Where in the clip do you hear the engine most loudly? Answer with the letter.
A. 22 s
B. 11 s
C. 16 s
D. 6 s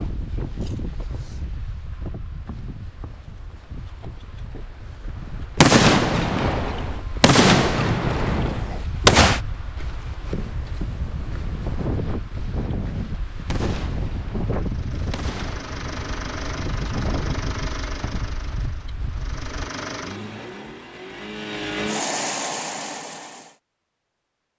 A.